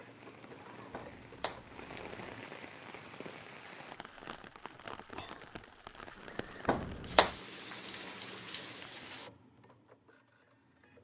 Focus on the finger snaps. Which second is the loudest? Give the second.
7 s.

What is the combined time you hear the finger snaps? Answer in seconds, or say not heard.
2 s.